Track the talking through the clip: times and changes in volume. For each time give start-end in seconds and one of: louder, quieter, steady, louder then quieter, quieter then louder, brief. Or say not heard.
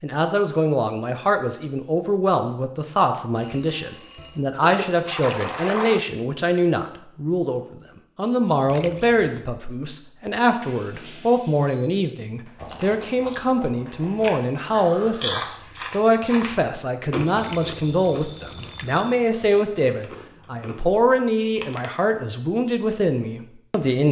0.0-24.0 steady.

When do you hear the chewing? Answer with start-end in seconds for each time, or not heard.
12.6-21.9.